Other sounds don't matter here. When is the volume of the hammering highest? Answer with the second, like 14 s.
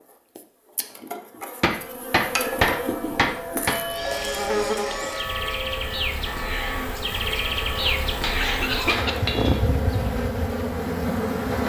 3 s.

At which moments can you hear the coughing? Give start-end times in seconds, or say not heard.
7.8-9.6.